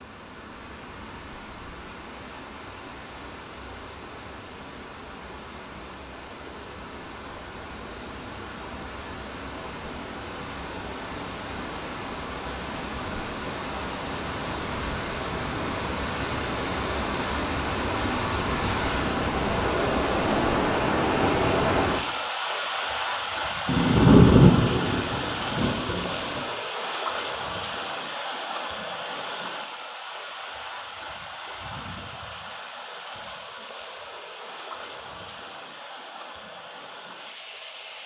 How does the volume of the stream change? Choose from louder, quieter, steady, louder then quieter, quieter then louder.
louder then quieter.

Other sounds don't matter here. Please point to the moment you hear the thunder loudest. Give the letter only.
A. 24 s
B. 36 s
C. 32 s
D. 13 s
A.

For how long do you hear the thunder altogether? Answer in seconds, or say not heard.
3 s.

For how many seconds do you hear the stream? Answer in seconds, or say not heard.
38 s.